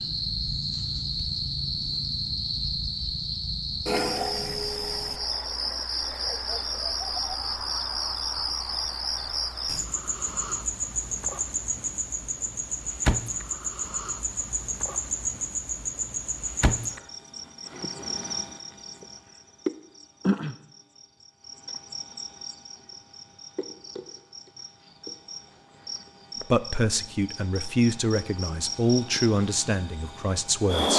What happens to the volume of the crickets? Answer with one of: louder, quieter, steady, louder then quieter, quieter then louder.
quieter.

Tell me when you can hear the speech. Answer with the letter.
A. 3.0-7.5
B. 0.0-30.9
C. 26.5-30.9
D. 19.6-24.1
C.